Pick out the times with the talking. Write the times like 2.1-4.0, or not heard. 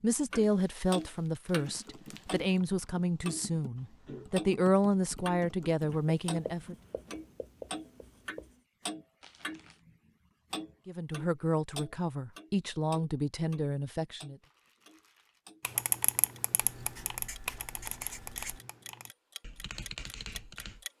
0.0-6.8, 10.8-14.3.